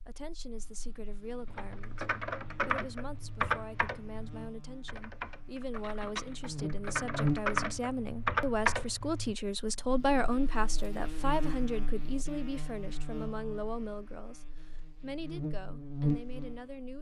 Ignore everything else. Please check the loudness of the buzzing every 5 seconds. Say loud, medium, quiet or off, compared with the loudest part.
quiet, loud, medium, loud.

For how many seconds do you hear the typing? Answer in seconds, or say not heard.
8 s.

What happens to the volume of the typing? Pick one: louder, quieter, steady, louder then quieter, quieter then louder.
quieter then louder.